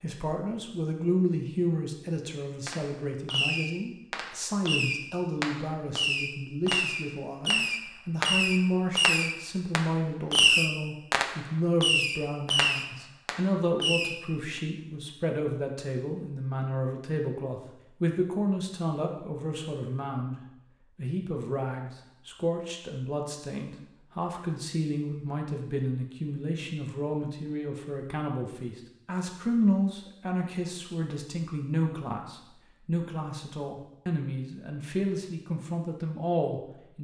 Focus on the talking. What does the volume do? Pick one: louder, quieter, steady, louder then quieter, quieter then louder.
steady.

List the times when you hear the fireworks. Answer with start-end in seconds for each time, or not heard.
2.6-14.2.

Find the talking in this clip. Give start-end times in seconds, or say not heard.
0.0-36.9.